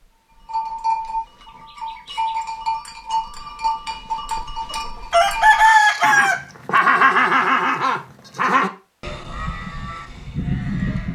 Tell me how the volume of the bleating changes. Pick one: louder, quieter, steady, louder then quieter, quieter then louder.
louder then quieter.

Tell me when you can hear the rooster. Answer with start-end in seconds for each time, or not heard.
4.7-6.5.